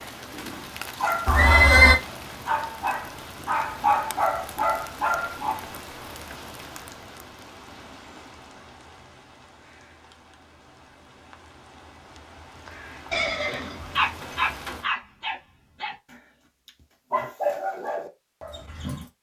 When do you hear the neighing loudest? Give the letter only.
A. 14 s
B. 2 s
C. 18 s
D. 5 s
B.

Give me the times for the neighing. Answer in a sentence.
The neighing can be heard from 1.2 to 2.0 s and from 13.1 to 14.3 s.